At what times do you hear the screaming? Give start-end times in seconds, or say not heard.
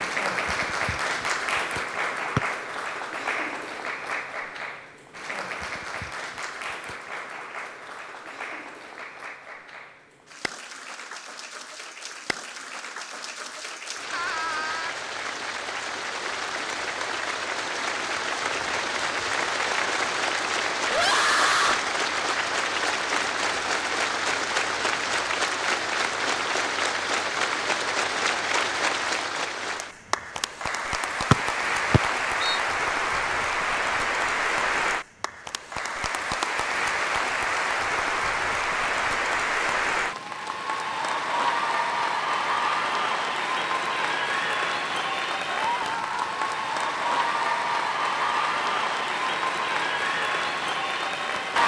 14.1-14.9, 20.9-21.8, 45.7-46.4.